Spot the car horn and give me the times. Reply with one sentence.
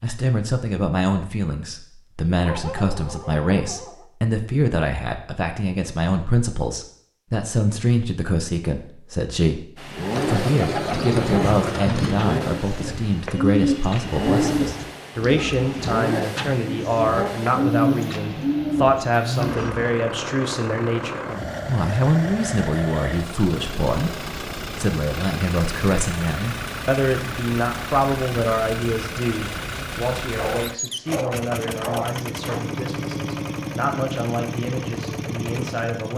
You can't hear the car horn here.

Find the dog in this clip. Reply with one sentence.
You can hear the dog from 2.4 to 4.0 s and from 30.4 to 32.6 s.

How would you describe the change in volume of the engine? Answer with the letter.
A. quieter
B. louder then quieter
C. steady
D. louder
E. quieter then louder
C.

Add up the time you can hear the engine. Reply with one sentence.
The engine can be heard for 26 seconds in total.